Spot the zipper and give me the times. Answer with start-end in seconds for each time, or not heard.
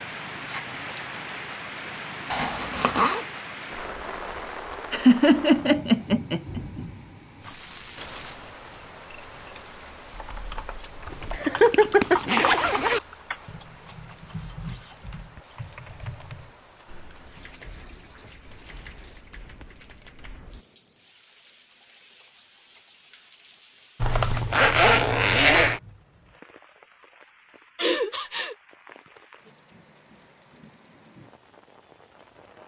2.3-3.2, 11.1-13.0, 24.0-25.8.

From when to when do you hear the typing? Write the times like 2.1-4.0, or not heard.
10.1-20.6.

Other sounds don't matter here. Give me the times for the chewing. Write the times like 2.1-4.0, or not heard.
not heard.